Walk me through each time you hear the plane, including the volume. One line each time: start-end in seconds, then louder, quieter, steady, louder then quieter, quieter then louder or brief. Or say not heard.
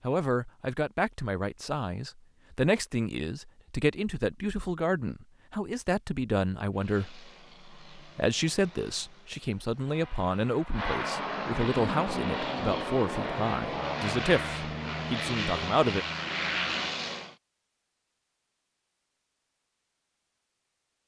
6.7-17.4 louder.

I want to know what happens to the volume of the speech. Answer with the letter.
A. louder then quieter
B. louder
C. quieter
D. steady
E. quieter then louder
D.